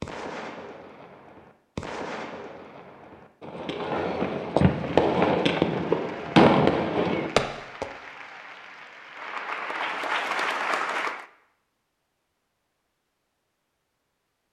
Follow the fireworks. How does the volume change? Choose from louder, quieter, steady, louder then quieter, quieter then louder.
louder.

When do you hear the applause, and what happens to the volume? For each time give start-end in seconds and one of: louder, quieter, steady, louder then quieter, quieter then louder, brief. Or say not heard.
4.7-11.2 louder.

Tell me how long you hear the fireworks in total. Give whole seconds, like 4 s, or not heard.
8 s.